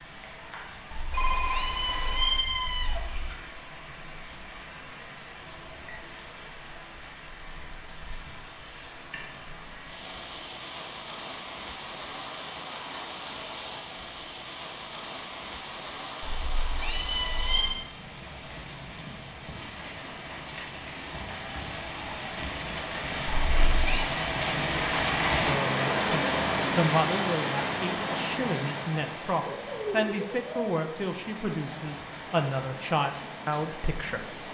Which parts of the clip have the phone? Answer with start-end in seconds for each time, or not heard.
1.1-2.5.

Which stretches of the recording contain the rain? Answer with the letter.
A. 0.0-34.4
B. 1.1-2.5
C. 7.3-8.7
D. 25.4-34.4
A.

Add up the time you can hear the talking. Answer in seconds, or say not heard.
9 s.